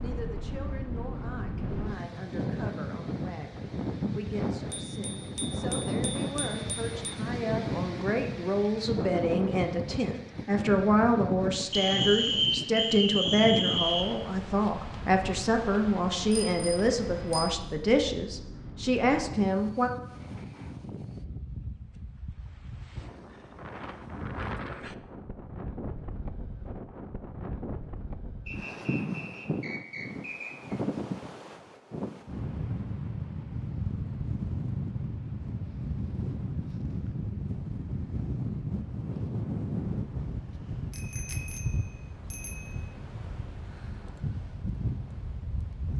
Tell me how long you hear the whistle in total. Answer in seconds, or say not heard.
5 s.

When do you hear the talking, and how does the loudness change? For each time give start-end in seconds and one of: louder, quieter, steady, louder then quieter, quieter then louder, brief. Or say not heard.
0.0-19.9 louder.